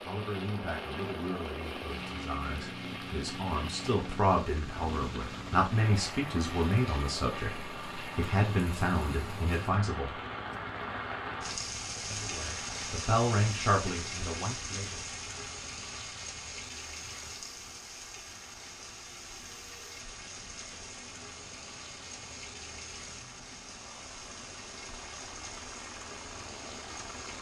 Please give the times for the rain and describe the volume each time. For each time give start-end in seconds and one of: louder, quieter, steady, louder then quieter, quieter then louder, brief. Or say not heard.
0.0-27.3 louder then quieter.